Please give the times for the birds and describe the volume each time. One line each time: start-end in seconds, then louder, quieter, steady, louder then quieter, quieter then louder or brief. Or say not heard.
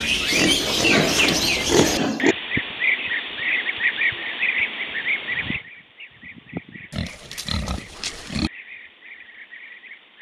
0.0-10.1 quieter.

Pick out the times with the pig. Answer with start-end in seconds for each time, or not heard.
0.3-2.4, 6.9-8.5.